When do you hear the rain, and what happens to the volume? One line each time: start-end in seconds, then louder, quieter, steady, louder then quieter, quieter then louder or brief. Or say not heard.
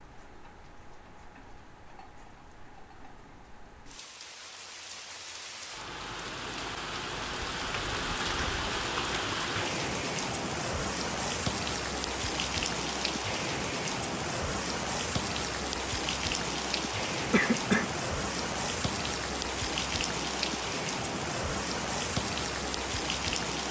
0.0-23.6 louder.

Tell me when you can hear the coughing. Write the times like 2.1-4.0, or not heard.
17.3-17.9.